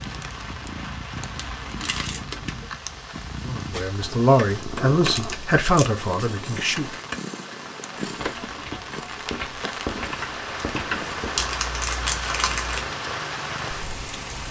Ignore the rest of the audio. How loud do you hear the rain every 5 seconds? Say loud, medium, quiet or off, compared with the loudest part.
medium, medium, loud.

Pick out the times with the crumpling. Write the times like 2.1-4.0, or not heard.
1.4-2.7, 5.1-5.9, 11.3-12.9.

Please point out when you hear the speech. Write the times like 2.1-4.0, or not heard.
3.4-6.9.